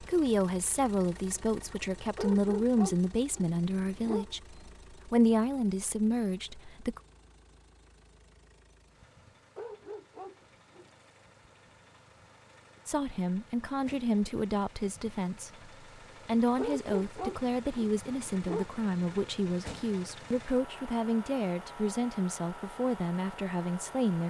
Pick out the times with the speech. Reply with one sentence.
The speech can be heard from 0.0 to 7.0 s and from 12.8 to 24.2 s.